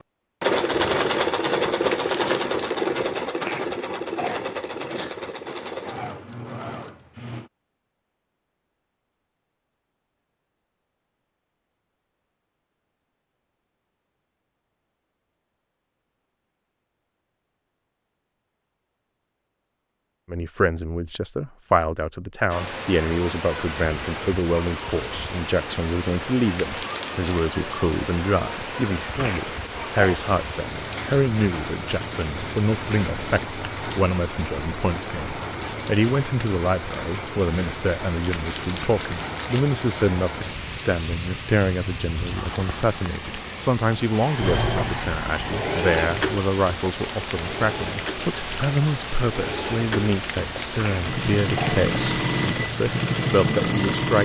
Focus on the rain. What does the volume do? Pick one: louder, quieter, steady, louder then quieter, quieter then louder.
steady.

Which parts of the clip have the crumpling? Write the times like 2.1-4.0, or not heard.
1.9-2.9, 26.6-27.6, 38.3-39.6.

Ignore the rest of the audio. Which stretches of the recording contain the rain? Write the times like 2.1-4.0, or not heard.
22.4-54.0.